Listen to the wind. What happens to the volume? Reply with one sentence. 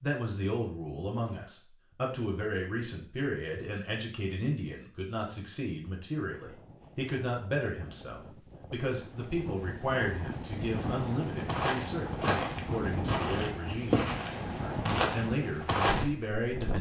The volume of the wind goes up.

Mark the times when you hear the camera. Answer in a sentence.
The camera can't be heard in this clip.